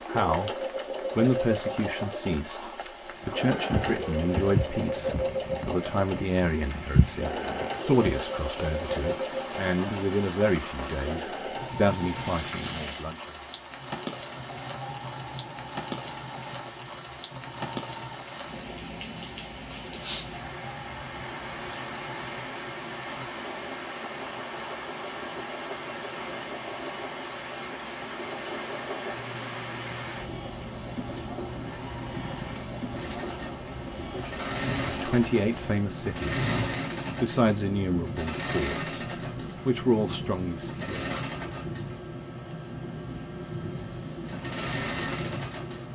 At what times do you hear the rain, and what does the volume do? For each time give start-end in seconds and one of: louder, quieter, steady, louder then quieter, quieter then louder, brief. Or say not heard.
0.0-45.9 steady.